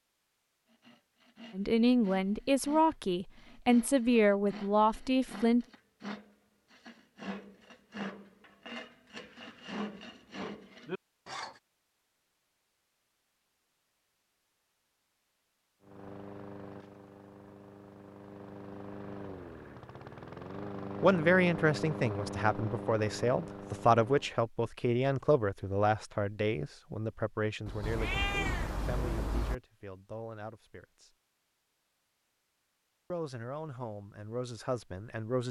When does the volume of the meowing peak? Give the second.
28 s.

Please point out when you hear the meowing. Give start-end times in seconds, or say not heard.
27.6-29.6.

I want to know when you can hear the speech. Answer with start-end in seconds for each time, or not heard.
1.6-5.7, 21.0-31.1, 33.1-35.4.